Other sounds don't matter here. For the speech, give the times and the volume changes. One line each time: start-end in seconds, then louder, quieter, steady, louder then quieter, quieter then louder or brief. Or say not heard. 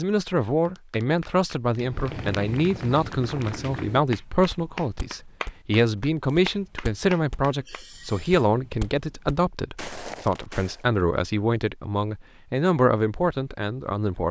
0.0-14.2 steady.